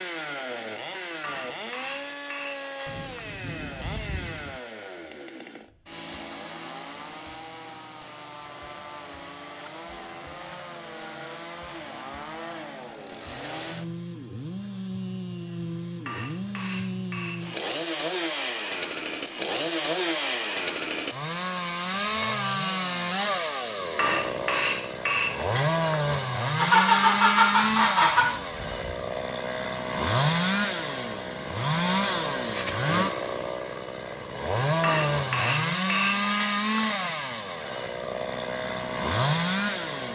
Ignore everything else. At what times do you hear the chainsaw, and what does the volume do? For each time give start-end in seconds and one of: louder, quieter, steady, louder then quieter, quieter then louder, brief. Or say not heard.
0.0-40.1 louder.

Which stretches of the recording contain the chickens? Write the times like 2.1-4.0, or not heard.
26.6-28.2.